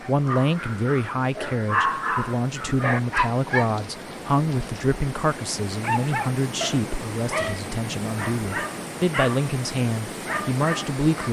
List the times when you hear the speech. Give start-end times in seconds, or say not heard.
0.1-11.2.